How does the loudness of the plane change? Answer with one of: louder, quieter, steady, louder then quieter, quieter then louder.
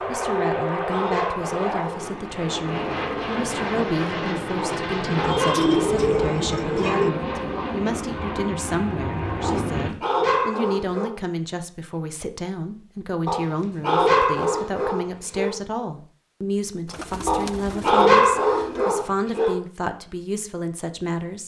steady.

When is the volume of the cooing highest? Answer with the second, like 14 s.
6 s.